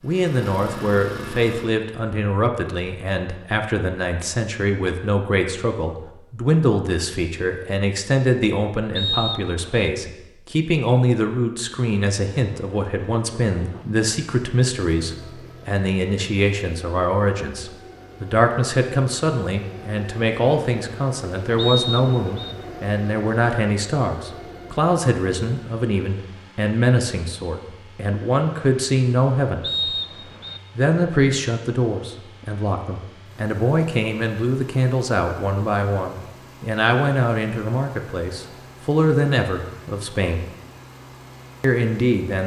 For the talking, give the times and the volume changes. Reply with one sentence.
The talking can be heard from 0.0 to 29.6 s, at a steady volume; from 30.8 to 40.5 s, at a steady volume; and briefly from 41.6 to 42.4 s.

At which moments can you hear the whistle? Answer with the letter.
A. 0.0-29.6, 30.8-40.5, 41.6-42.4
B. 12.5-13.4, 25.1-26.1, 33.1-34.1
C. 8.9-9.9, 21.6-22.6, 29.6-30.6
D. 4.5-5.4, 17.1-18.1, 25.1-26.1
C.